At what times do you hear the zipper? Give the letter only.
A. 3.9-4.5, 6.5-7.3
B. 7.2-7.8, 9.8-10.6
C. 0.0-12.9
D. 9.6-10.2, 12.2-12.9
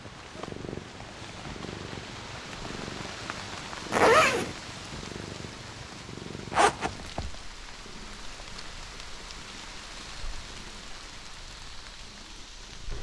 A.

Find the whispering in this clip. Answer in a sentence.
The whispering can't be heard in this clip.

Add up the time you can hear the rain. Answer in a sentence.
The rain can be heard for 13 seconds in total.